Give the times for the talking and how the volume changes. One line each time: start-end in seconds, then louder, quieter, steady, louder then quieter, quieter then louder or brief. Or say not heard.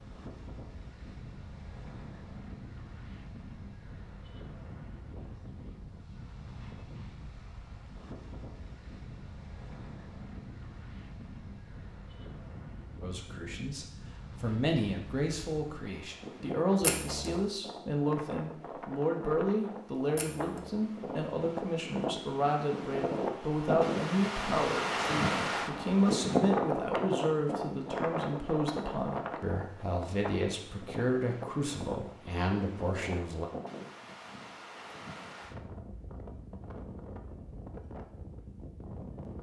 13.0-33.5 steady.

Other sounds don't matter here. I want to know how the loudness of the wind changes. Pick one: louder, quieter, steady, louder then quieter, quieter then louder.
louder then quieter.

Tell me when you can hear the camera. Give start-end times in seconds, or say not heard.
16.8-17.4, 20.1-20.7.